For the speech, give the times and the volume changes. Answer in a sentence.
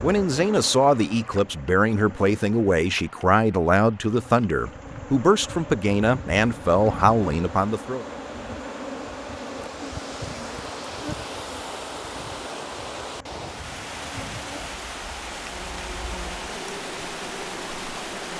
You can hear the speech from 0.0 to 8.1 s, at a steady volume.